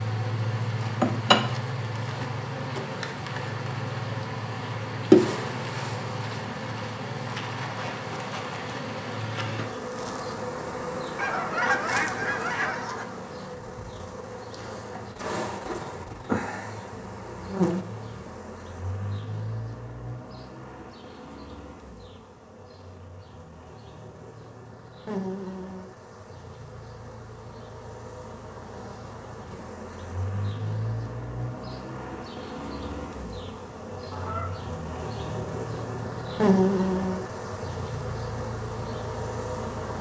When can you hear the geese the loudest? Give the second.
12 s.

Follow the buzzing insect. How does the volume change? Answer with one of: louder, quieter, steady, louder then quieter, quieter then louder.
quieter then louder.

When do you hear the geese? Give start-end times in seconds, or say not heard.
11.2-13.1, 34.1-34.6.